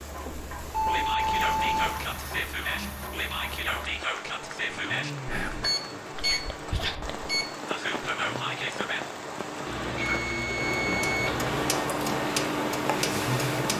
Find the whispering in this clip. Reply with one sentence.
You can hear the whispering from 0.8 to 9.1 s.